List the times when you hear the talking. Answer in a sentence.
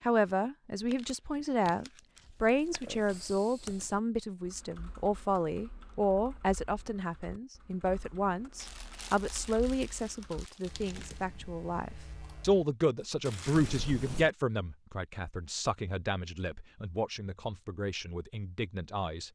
You can hear the talking from 0.0 to 19.2 s.